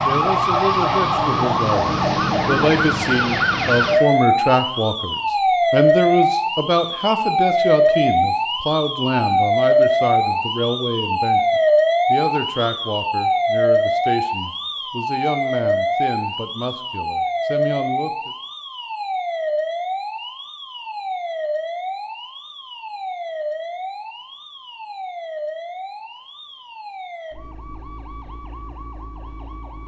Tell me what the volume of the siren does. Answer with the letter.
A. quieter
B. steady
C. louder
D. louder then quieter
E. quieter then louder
A.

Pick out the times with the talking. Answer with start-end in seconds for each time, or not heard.
0.0-18.4.